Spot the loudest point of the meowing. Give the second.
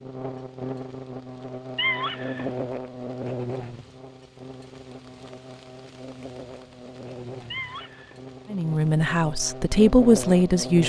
2 s.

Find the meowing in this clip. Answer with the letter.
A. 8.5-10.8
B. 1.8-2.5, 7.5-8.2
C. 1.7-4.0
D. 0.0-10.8
B.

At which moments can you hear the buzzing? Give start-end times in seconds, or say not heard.
0.0-10.8.